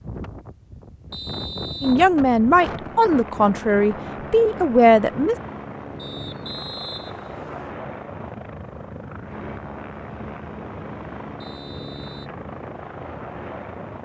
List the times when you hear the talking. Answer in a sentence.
The talking can be heard from 1.8 to 5.3 s.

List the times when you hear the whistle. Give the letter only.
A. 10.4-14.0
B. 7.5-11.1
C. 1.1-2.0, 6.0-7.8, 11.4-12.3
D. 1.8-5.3
C.